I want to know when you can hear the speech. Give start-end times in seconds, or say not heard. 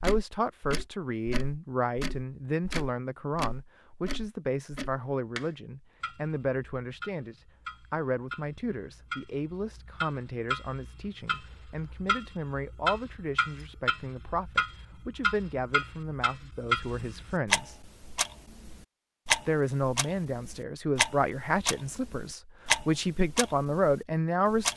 0.0-17.9, 19.4-24.7.